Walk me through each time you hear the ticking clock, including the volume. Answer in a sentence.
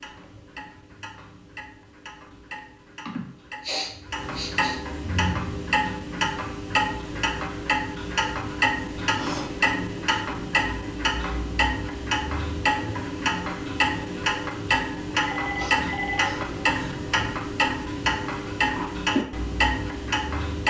You can hear the ticking clock from 0.0 to 20.6 s, getting louder.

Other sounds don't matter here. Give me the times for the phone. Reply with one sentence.
You can hear the phone from 15.2 to 16.9 s.